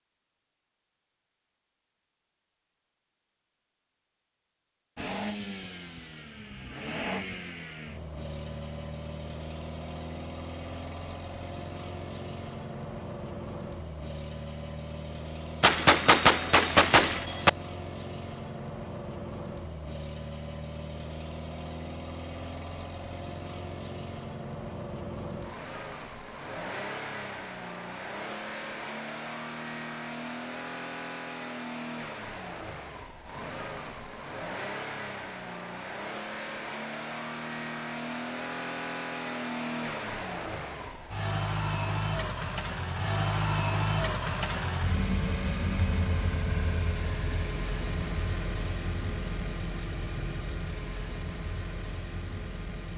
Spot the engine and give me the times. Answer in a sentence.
The engine can be heard from 5.0 to 52.9 s.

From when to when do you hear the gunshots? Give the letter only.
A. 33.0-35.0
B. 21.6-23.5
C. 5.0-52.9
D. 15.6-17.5
D.